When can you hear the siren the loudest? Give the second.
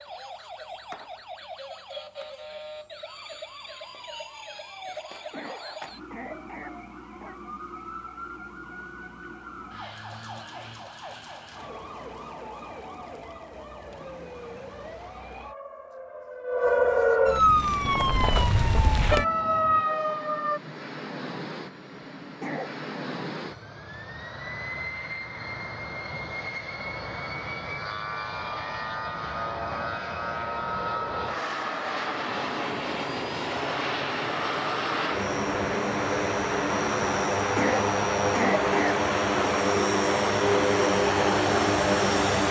17 s.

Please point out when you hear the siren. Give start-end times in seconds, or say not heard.
0.0-20.6.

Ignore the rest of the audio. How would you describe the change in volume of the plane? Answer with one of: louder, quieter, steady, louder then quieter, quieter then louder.
louder.